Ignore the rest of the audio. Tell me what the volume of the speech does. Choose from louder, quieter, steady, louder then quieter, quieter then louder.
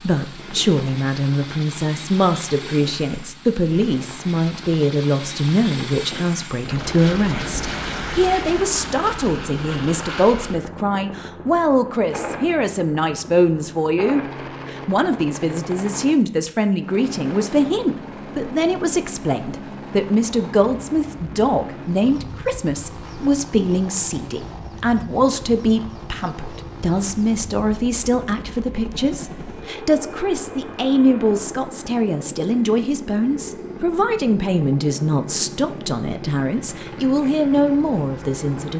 steady.